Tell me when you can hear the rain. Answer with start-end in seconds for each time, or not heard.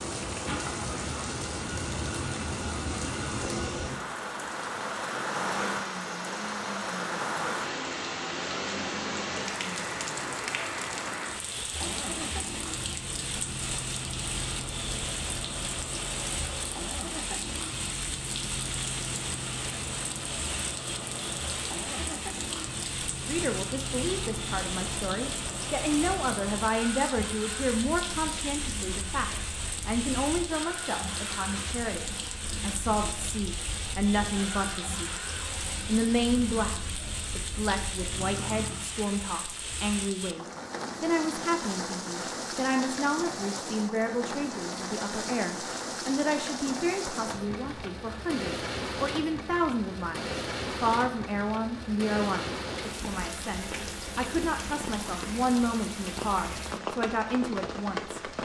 0.0-58.3.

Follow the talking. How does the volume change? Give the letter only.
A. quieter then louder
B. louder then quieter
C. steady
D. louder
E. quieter
C.